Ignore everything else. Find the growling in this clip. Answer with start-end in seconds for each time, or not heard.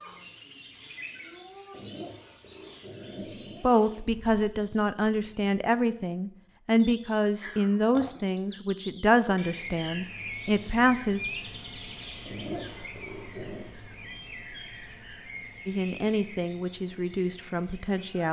1.7-3.6, 7.4-8.2, 12.2-13.7.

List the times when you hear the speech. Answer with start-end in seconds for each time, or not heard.
3.1-11.2, 15.7-18.2.